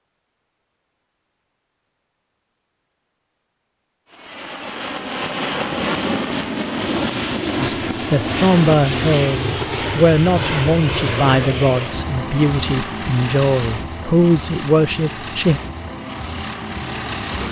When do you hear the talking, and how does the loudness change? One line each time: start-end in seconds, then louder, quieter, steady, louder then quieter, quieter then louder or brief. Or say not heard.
7.5-15.6 steady.